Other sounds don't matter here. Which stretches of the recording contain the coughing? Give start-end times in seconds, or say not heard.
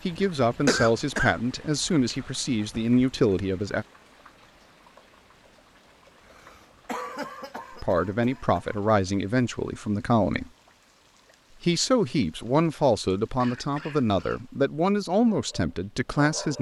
0.7-1.4, 6.2-8.8, 13.4-14.4.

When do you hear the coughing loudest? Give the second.
1 s.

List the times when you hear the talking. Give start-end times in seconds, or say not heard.
0.0-3.9, 7.8-10.5, 11.6-16.5.